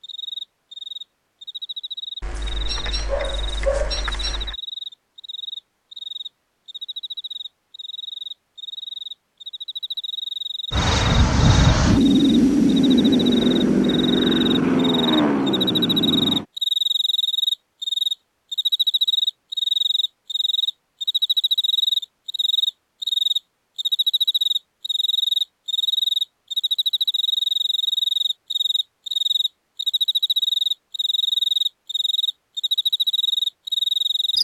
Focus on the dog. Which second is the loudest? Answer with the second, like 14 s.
4 s.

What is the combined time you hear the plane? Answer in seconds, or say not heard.
6 s.